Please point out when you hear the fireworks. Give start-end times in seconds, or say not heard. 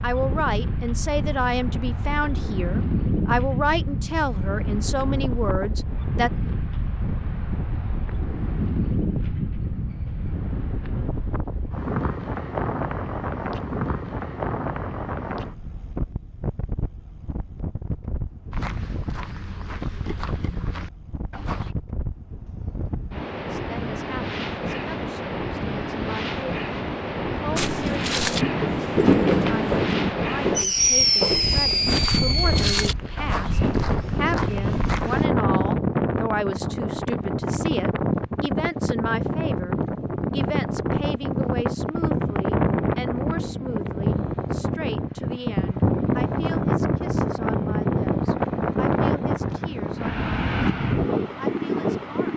27.6-32.9.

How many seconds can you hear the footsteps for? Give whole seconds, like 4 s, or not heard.
11 s.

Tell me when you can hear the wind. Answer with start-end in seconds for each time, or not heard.
0.0-52.3.